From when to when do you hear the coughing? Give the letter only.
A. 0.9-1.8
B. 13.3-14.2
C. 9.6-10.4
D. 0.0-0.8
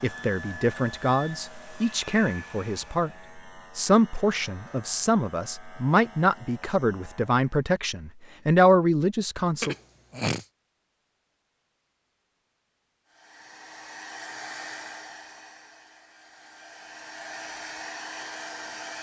C.